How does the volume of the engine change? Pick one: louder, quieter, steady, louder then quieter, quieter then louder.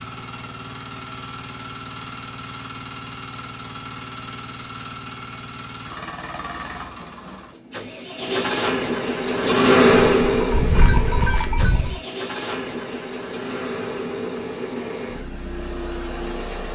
louder then quieter.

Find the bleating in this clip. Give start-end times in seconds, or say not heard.
9.3-12.0.